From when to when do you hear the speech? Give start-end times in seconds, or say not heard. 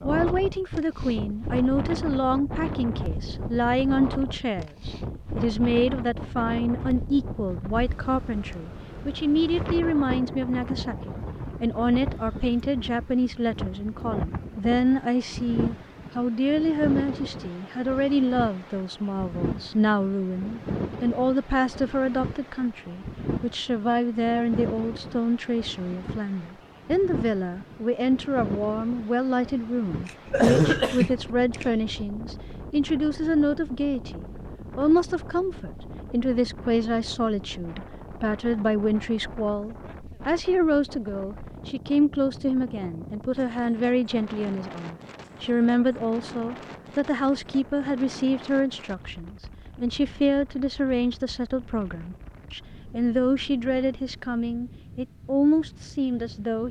0.0-56.6.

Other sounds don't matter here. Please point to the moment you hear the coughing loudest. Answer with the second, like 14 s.
31 s.